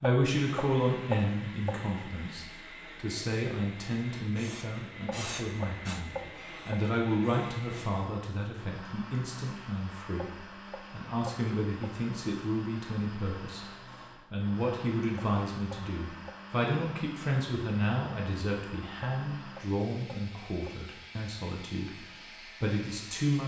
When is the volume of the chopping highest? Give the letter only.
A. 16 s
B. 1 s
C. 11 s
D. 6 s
B.